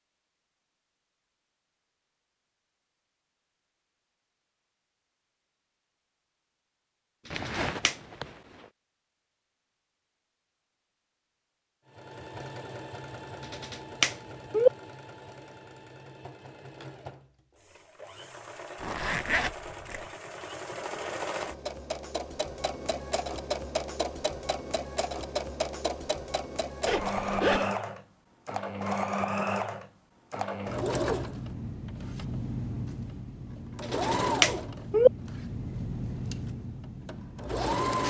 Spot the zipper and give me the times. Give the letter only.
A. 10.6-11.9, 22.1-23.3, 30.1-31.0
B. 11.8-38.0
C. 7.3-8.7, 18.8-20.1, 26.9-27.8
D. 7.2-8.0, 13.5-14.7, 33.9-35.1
C.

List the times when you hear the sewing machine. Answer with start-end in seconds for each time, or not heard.
11.8-38.0.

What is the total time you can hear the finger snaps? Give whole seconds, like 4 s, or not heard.
3 s.